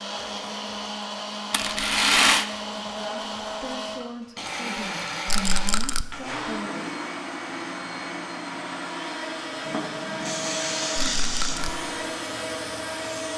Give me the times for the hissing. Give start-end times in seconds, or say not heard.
9.6-13.3.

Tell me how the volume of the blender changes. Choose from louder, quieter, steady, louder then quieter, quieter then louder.
steady.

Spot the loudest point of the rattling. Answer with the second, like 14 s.
2 s.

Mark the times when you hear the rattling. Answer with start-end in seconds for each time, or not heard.
1.5-2.5, 5.2-6.0, 11.2-11.7.